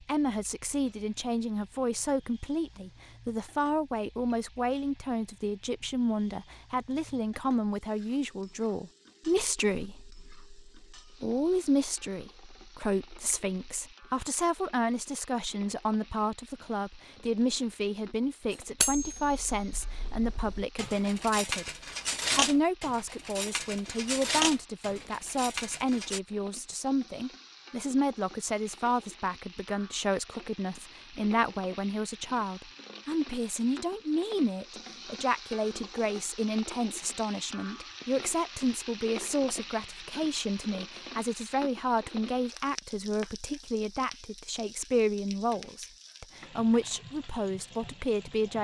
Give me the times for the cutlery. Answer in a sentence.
The cutlery can be heard from 18.5 to 26.2 s.